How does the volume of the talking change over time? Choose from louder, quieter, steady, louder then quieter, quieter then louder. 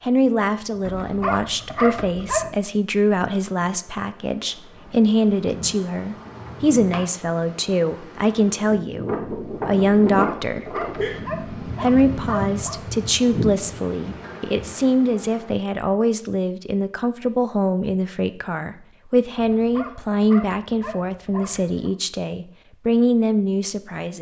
steady.